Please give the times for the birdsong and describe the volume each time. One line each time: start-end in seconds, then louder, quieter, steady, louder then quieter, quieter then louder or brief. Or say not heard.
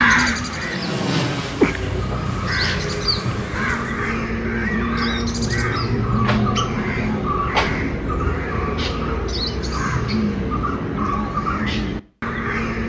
0.0-12.8 steady.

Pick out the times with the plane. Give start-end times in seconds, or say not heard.
0.2-4.2.